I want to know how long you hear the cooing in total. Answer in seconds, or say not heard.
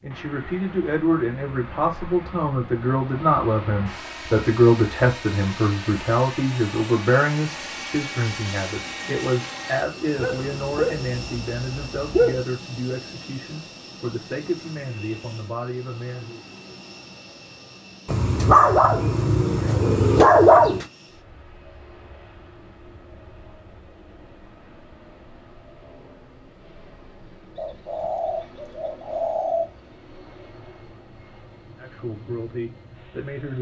2 s.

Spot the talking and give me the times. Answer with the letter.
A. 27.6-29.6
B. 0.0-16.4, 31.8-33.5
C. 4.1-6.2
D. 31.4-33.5
B.